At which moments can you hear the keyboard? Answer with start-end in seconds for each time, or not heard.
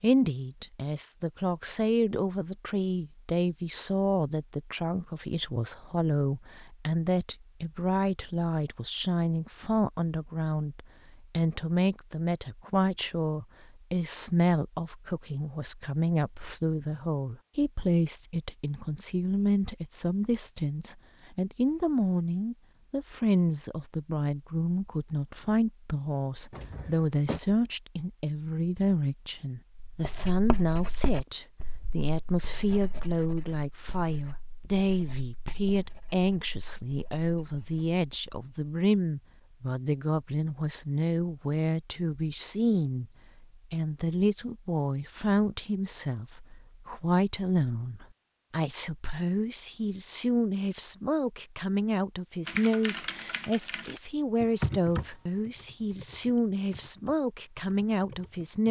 52.5-58.6.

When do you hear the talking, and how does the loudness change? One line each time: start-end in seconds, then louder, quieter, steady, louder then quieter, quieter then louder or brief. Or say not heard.
0.0-58.6 steady.